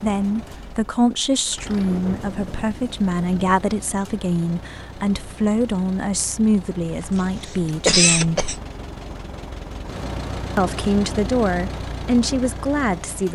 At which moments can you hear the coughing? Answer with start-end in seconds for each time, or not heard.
6.9-8.6.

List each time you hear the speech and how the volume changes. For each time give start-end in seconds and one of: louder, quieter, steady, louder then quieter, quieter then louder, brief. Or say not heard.
0.0-8.4 steady
10.6-13.3 brief.